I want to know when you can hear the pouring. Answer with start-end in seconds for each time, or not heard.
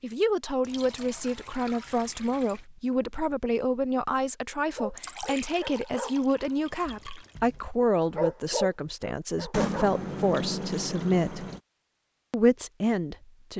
0.6-2.6, 5.0-7.5, 9.5-11.6.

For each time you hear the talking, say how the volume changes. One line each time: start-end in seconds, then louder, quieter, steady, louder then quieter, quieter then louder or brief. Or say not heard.
0.0-11.4 steady
12.3-13.5 brief.